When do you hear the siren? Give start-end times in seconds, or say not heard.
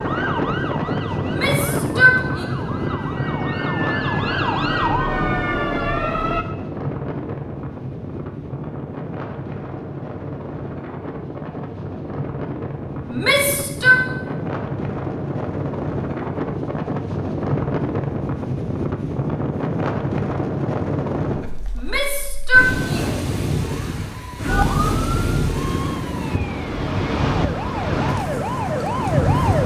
0.0-6.5, 24.4-29.6.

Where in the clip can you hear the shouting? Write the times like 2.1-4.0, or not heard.
1.2-2.5, 13.1-14.0, 21.8-23.1.